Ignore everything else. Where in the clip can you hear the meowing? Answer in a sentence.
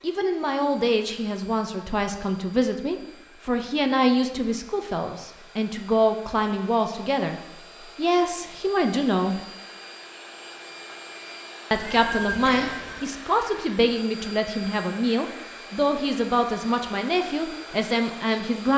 You can hear the meowing from 11.7 to 13.2 s.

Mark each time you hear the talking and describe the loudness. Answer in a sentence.
You can hear the talking from 0.0 to 9.4 s, at a steady volume; and from 11.7 to 18.7 s, at a steady volume.